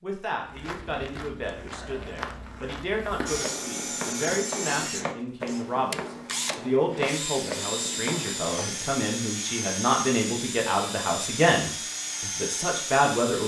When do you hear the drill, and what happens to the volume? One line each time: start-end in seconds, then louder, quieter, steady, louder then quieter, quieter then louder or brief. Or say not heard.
3.2-13.4 steady.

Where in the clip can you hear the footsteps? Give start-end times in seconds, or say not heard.
0.4-8.8.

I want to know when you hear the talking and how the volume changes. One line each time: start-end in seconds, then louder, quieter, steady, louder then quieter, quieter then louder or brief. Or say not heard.
0.0-13.4 louder.